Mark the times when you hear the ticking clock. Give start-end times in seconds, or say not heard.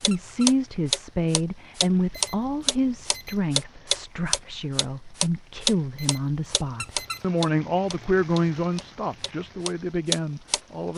0.0-10.9.